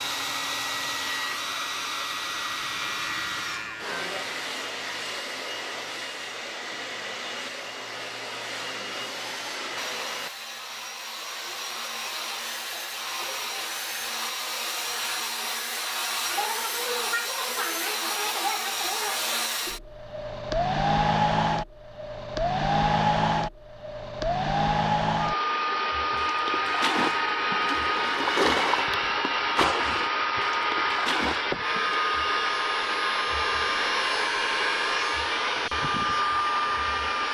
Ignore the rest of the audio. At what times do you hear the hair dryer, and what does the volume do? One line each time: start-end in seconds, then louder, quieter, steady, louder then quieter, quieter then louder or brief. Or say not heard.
0.0-37.2 louder.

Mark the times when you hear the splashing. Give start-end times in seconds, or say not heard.
26.1-32.0.